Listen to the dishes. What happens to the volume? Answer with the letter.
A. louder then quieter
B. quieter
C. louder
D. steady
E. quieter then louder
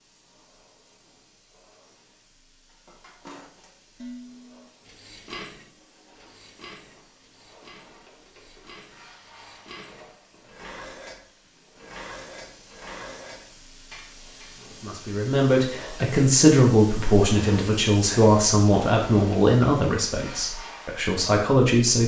E.